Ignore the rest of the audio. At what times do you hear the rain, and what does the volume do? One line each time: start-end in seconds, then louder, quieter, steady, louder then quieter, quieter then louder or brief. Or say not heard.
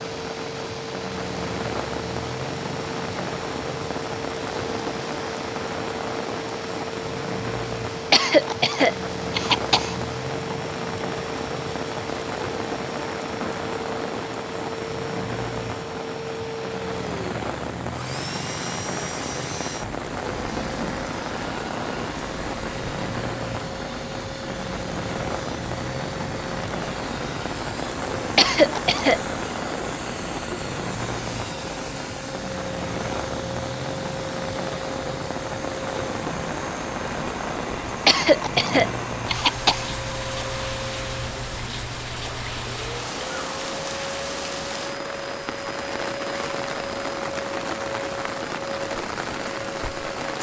0.0-50.3 steady.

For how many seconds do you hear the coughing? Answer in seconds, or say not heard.
5 s.